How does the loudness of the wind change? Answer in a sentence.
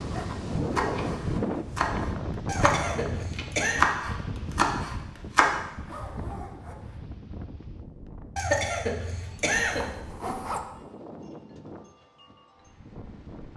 The loudness of the wind goes down.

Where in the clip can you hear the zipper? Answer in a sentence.
You can hear the zipper from 0.5 to 1.2 s, from 5.7 to 7.0 s and from 9.5 to 10.6 s.